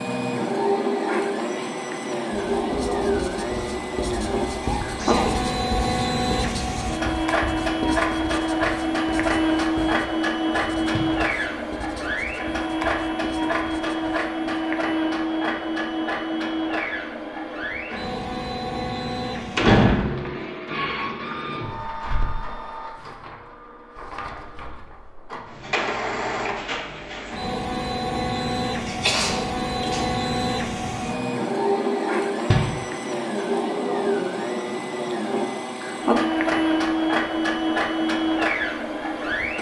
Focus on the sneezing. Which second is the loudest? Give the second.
29 s.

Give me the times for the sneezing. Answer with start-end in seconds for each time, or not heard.
4.6-5.5, 28.9-30.1.